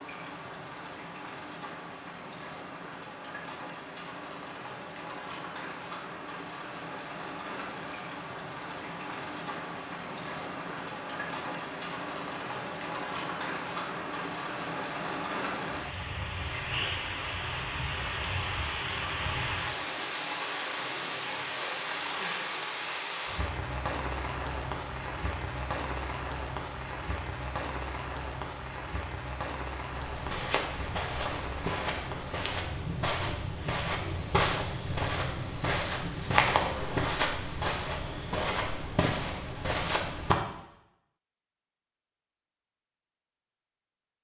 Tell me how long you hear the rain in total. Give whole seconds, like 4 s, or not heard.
37 s.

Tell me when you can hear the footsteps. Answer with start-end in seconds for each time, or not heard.
29.9-40.4.